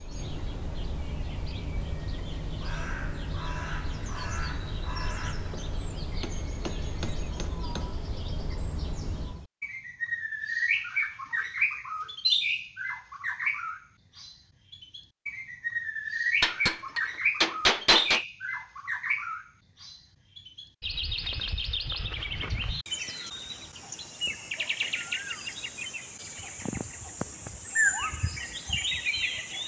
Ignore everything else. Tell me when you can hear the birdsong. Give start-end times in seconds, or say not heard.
0.0-29.6.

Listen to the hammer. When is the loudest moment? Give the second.
18 s.